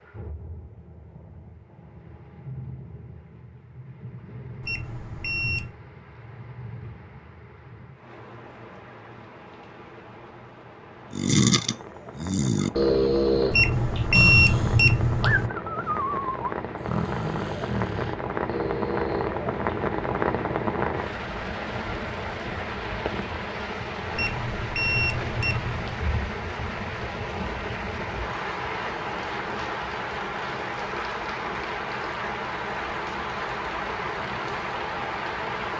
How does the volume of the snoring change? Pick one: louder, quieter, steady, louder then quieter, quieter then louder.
quieter.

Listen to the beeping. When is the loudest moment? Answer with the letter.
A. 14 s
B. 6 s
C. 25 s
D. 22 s
A.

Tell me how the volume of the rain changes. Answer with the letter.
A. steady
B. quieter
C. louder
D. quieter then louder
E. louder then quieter
C.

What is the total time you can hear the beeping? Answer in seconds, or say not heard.
5 s.